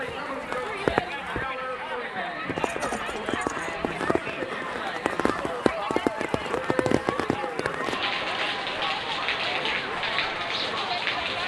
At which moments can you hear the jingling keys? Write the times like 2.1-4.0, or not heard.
2.5-3.8.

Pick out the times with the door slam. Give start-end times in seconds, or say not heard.
not heard.